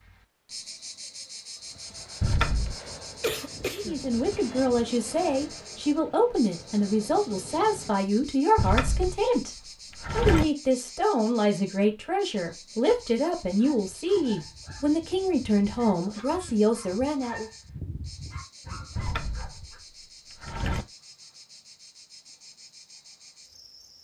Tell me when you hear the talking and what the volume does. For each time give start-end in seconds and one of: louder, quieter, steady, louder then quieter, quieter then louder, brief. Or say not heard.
3.7-17.5 steady.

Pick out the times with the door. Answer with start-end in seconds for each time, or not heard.
2.2-2.8, 8.6-10.4, 18.9-20.9.